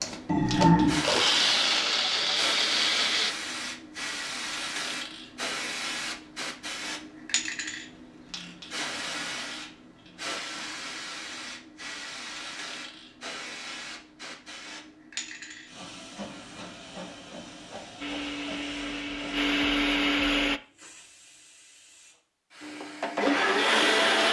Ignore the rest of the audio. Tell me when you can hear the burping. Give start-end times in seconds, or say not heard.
0.2-1.1.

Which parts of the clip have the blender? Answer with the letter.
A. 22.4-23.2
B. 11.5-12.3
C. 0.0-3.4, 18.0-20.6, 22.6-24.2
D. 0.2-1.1
C.